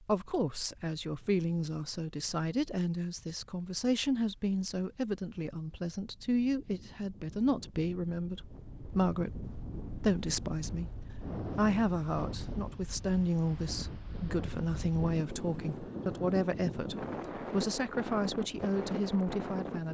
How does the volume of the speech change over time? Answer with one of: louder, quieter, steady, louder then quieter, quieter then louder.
steady.